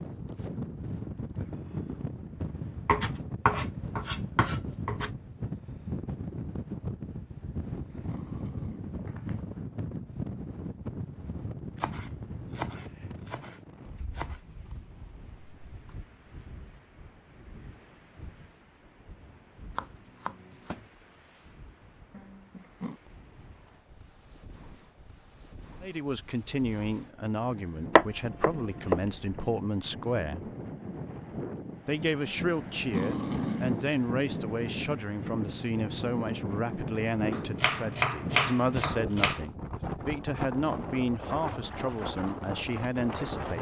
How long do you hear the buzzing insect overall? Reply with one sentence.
The buzzing insect can't be heard in this clip.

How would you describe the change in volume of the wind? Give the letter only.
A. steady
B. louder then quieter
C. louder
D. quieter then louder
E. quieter
D.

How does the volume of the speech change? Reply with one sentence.
The volume of the speech stays about the same.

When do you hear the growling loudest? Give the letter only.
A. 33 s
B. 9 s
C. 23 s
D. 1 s
A.